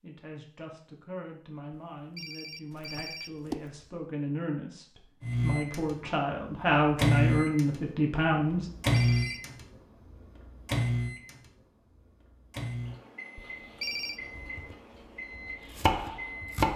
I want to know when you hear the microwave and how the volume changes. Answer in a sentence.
You can hear the microwave from 5.2 to 16.7 s, getting quieter.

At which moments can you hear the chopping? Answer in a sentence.
You can hear the chopping from 14.2 to 16.7 s.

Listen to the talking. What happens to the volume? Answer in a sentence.
The loudness of the talking goes up.